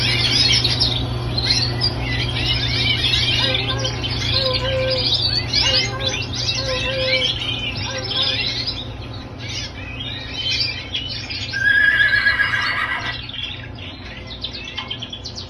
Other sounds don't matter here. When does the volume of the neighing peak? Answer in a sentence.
The volume of the neighing peaks at 12 seconds.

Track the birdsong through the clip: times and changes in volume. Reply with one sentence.
The birdsong can be heard from 0.0 to 15.4 s, getting quieter.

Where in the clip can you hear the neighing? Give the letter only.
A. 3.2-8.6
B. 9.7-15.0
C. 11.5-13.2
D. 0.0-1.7
C.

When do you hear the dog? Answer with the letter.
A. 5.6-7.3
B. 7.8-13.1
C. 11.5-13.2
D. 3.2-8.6
D.